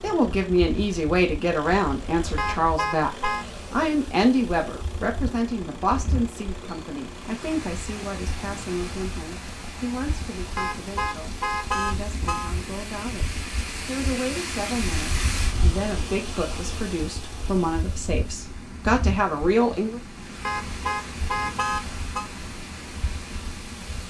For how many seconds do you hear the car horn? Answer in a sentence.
The car horn can be heard for 5 seconds in total.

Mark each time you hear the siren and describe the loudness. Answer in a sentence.
You can't hear the siren here.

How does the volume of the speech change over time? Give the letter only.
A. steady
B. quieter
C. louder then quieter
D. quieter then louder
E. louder
D.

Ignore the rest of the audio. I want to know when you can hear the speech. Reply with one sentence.
You can hear the speech from 0.0 to 20.0 s.